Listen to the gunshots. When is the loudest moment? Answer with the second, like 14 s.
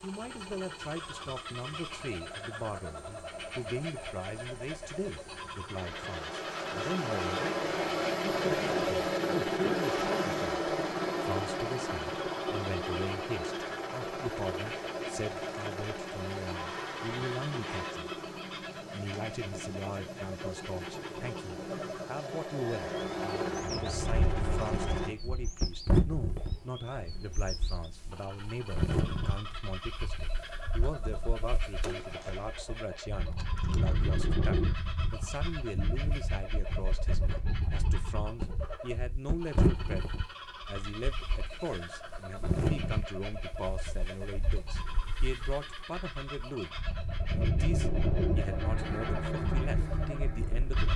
32 s.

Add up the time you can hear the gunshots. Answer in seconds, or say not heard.
2 s.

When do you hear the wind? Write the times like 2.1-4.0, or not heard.
24.0-50.9.